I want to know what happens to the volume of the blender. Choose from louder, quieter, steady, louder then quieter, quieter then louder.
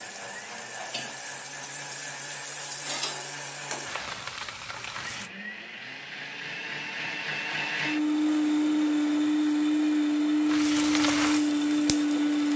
louder.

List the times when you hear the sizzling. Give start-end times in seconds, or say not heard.
0.0-5.3, 10.4-12.5.